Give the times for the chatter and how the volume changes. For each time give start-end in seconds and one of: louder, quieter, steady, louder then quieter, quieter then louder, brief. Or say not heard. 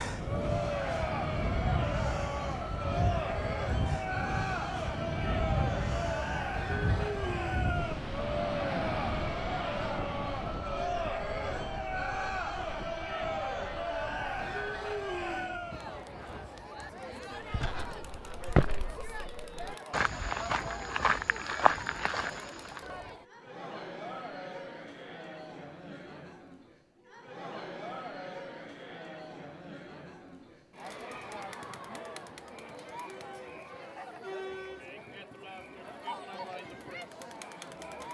0.1-38.0 quieter.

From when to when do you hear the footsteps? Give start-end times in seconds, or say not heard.
17.4-22.8.